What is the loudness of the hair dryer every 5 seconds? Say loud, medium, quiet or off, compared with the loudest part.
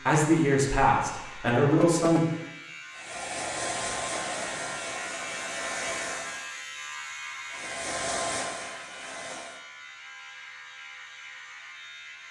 loud, loud, off.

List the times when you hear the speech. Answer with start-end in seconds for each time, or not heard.
0.0-2.2.